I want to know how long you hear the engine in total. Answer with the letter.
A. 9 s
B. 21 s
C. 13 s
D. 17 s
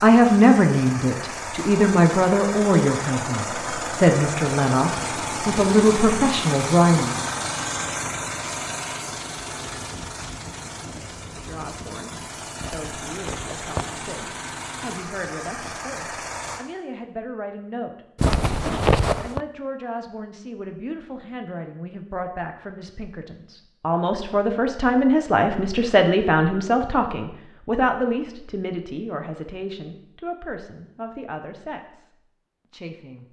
D.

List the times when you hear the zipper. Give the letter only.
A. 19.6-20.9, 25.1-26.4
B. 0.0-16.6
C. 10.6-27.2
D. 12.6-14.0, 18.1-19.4
D.